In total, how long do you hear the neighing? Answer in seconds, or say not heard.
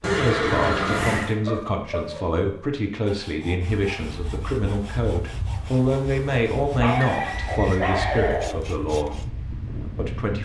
3 s.